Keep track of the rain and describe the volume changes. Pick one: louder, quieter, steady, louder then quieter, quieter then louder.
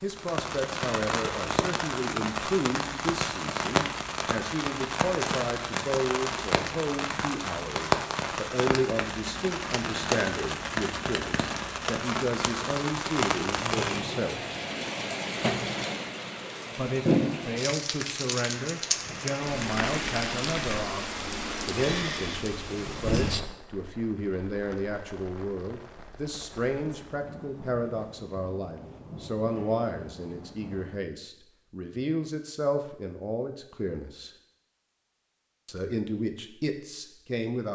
quieter.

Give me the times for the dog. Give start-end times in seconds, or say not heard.
not heard.